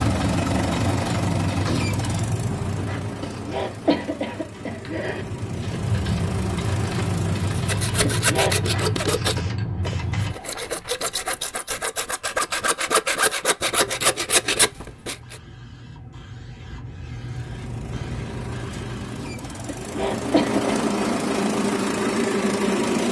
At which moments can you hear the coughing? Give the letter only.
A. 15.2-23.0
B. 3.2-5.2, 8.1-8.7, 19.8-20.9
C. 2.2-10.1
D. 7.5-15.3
B.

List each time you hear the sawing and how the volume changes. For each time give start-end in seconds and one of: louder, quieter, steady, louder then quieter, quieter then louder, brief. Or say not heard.
7.5-15.3 quieter then louder.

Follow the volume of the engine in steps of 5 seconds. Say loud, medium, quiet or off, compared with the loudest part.
medium, medium, off, quiet, loud.